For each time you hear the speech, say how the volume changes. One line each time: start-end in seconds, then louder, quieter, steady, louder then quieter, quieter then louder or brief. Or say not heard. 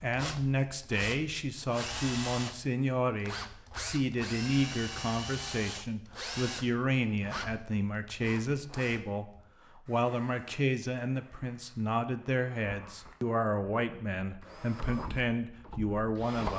0.0-16.5 steady.